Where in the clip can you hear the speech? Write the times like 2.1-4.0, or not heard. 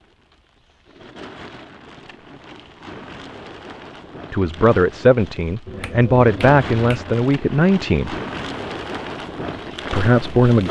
4.3-8.2, 9.9-10.6.